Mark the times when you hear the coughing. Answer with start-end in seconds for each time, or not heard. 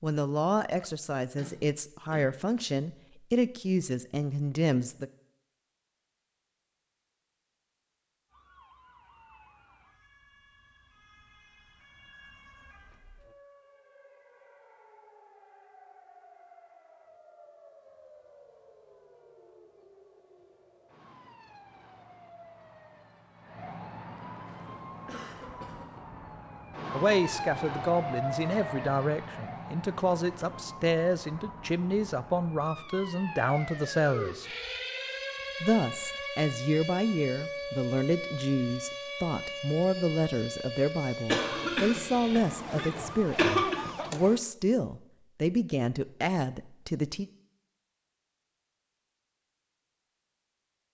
1.4-2.2, 24.6-26.0, 41.3-43.8.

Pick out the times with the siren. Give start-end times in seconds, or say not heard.
8.3-44.4.